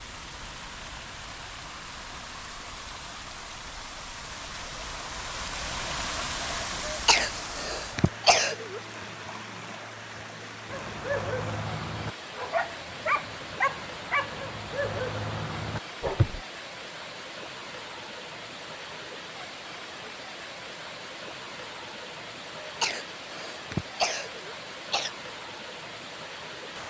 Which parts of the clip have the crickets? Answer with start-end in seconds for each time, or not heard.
not heard.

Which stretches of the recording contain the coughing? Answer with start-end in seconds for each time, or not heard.
6.8-8.8, 22.6-25.1.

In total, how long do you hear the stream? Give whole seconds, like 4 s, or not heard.
27 s.